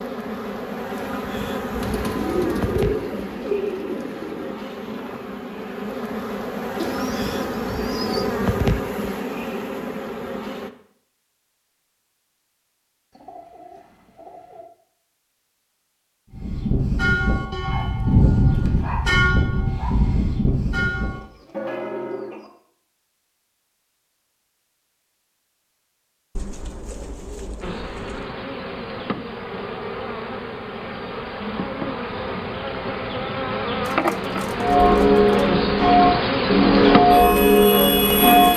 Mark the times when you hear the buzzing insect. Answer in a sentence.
The buzzing insect can be heard from 0.0 to 10.7 s and from 27.6 to 38.5 s.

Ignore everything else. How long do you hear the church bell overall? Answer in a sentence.
The church bell can be heard for 10 seconds in total.